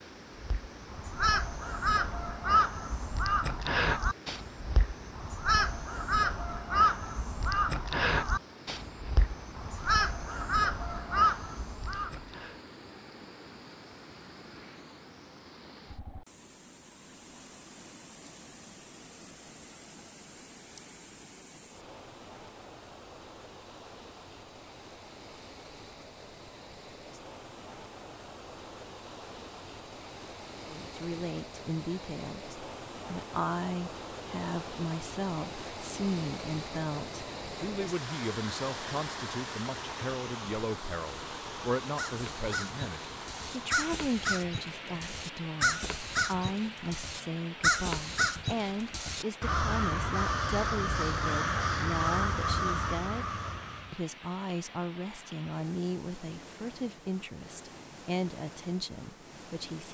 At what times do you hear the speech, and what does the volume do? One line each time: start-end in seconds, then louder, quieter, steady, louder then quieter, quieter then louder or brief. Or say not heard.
30.6-53.2 steady
53.9-59.8 steady.